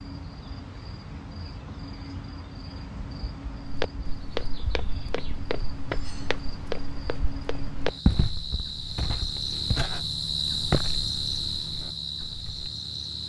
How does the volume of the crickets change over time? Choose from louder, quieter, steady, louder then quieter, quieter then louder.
louder.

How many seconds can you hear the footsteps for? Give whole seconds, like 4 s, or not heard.
9 s.